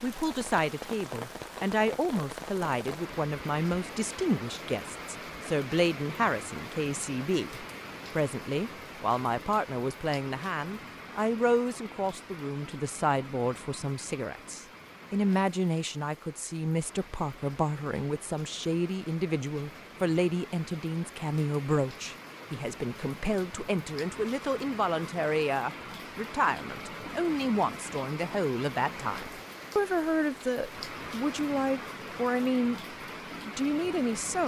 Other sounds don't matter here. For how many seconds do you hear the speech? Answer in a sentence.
You can hear the speech for 34 seconds altogether.